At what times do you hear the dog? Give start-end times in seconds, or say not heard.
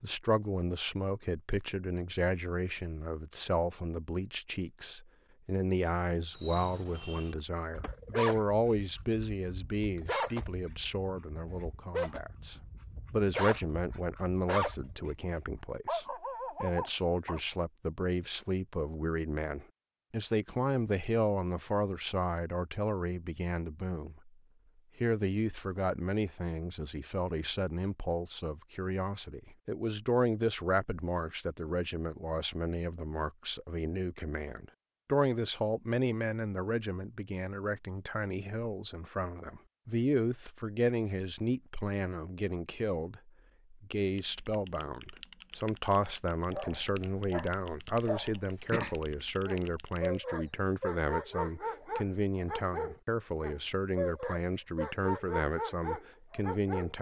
6.3-17.4, 46.5-56.9.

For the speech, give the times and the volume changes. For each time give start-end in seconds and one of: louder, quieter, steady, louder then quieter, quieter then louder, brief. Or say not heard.
0.0-24.3 steady
24.9-56.9 steady.